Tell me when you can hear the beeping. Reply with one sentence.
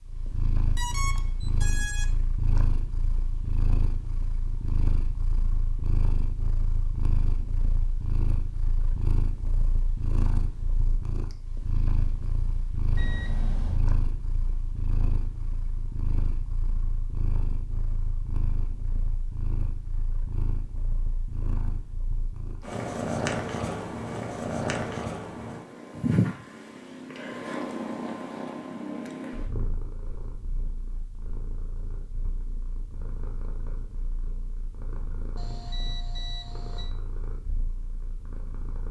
You can hear the beeping from 0.8 to 2.2 s, from 12.9 to 13.8 s and from 35.4 to 37.0 s.